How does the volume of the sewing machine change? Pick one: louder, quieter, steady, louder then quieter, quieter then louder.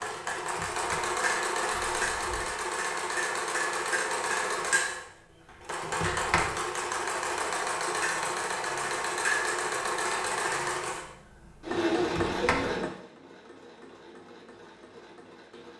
quieter.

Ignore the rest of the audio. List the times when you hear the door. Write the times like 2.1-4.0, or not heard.
0.4-2.5, 5.8-6.5, 11.9-12.8.